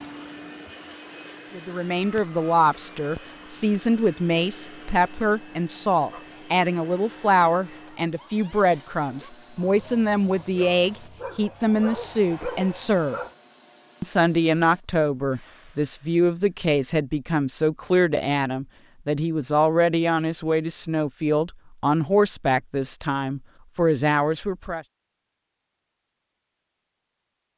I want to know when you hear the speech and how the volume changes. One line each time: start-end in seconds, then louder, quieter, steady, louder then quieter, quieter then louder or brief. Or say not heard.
1.5-13.2 steady
14.0-24.9 steady.